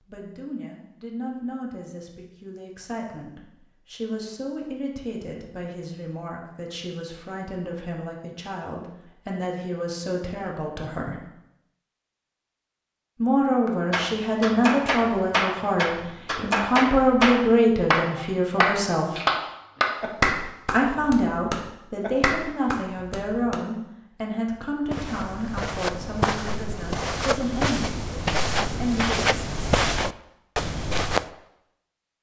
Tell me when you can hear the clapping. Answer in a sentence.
The clapping can be heard from 13.7 to 23.6 s.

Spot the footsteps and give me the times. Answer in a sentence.
The footsteps can be heard from 24.9 to 31.3 s.